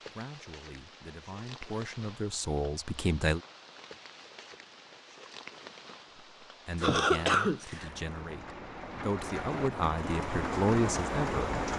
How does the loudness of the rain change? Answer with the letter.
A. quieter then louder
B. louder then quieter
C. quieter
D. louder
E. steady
D.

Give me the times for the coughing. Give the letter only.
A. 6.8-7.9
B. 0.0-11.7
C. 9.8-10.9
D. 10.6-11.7
A.